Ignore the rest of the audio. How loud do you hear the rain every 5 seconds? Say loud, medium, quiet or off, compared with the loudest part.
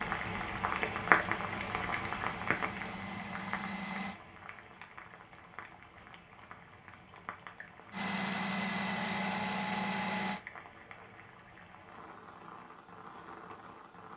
loud, quiet, quiet.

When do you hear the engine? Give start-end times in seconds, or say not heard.
0.0-4.2, 7.9-10.4.